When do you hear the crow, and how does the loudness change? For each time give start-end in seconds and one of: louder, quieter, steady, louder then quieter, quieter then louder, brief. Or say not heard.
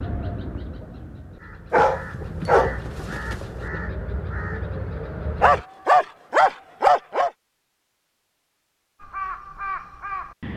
0.0-5.7 louder
9.0-10.5 brief.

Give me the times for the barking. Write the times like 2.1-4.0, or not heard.
1.7-3.5, 5.4-7.3.